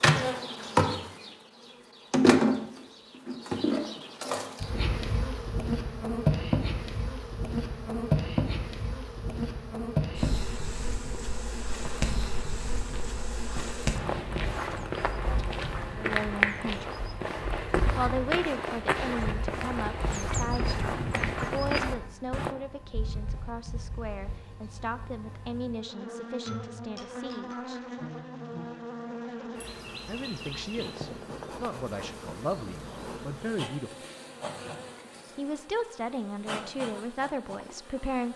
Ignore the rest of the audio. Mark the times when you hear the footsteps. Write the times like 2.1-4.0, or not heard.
11.7-22.6.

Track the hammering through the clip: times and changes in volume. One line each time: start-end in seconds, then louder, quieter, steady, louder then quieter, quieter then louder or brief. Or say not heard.
not heard.